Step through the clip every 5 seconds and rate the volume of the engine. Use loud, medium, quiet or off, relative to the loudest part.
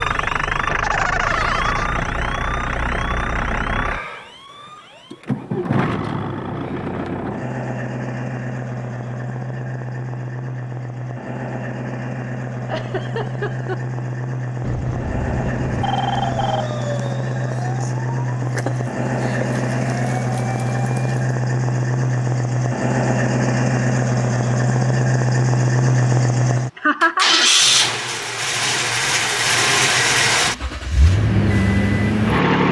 medium, medium, medium, medium, loud, loud, loud.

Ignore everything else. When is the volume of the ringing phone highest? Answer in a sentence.
The volume of the ringing phone peaks at 16 seconds.